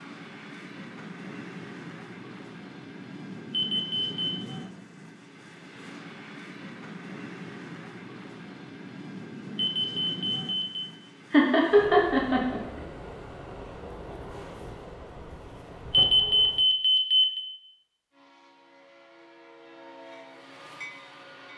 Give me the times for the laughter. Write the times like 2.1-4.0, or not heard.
11.3-12.8.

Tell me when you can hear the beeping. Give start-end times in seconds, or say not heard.
3.5-4.1, 9.6-10.8, 15.9-17.4.